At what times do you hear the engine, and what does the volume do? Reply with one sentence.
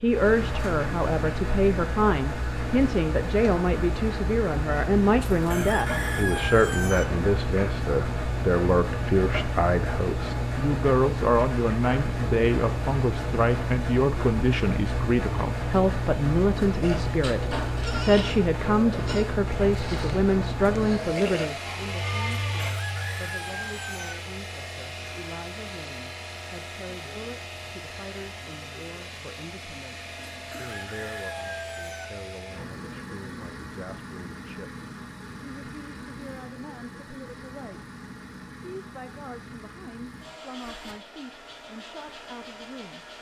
The engine can be heard from 0.0 to 43.1 s, getting quieter.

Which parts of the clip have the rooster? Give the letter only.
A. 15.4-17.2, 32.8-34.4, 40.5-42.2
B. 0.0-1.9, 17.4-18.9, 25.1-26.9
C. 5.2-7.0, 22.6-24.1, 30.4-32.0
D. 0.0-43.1
C.